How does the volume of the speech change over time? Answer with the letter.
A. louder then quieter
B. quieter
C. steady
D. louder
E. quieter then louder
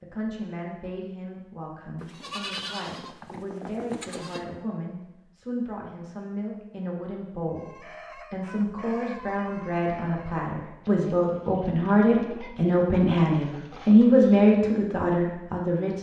D.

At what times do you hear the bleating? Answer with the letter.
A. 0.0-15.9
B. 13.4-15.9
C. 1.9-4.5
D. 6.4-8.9
C.